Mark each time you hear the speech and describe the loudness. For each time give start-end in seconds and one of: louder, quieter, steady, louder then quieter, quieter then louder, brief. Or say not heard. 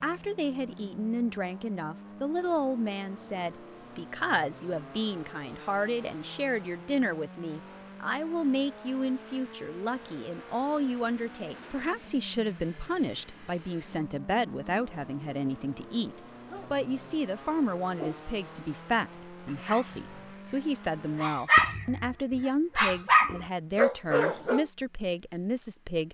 0.0-26.1 steady.